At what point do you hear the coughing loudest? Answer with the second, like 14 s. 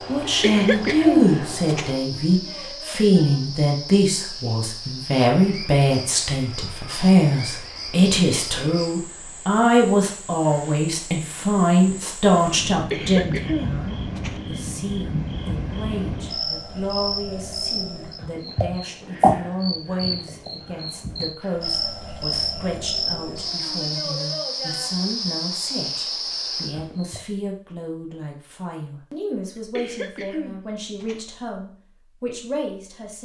1 s.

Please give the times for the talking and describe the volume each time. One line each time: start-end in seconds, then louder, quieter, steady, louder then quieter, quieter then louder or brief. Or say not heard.
0.1-33.2 quieter.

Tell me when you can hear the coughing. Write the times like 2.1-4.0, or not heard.
0.2-1.9, 12.7-14.4, 29.6-31.2.